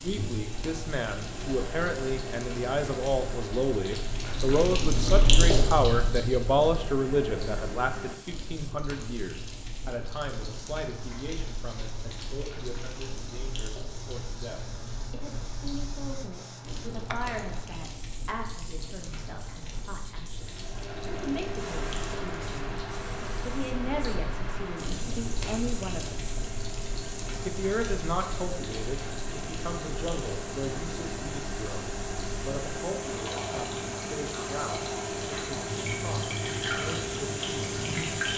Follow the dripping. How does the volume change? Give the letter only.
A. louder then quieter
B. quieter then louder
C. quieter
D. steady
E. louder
B.